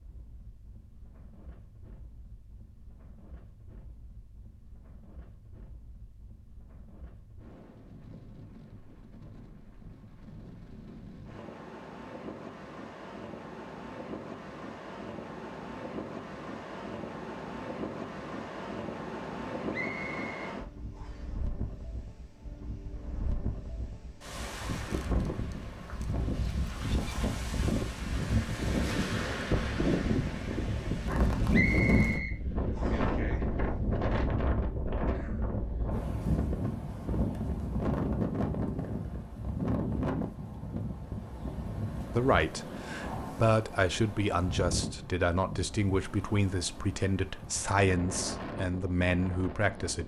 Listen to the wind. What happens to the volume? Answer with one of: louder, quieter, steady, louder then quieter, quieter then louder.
louder then quieter.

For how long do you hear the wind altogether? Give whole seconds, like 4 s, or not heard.
50 s.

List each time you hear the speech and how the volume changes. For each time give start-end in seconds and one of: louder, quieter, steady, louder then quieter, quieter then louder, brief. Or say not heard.
42.1-50.0 steady.